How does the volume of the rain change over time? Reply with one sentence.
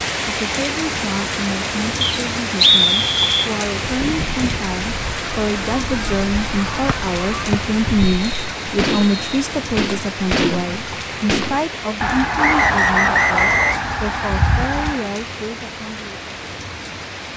The volume of the rain goes down.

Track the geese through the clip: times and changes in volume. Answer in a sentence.
You can hear the geese from 3.8 to 15.1 s, getting louder.